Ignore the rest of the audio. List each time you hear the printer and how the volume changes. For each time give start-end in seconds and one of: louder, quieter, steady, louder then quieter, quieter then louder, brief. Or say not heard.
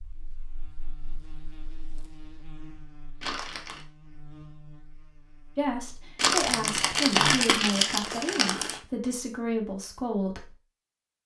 not heard.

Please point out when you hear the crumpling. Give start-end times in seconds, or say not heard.
3.2-3.9, 6.2-8.8.